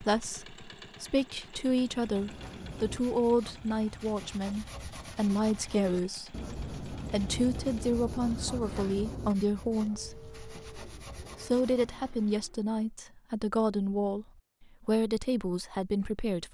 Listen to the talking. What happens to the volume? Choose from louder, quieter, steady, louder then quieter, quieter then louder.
steady.